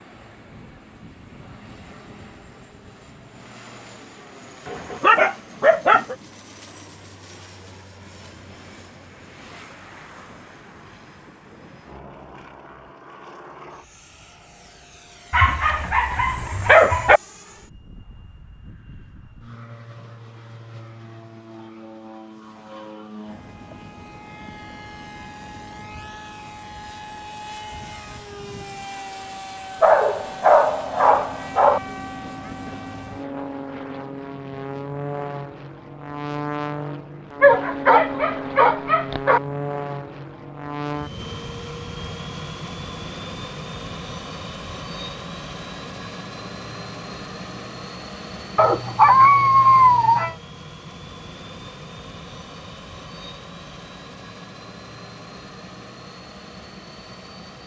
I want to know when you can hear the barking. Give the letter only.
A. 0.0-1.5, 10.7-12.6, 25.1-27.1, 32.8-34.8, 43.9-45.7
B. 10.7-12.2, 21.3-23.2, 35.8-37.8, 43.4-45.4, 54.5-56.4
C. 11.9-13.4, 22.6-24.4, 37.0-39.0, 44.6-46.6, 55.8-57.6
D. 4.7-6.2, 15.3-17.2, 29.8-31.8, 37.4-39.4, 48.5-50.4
D.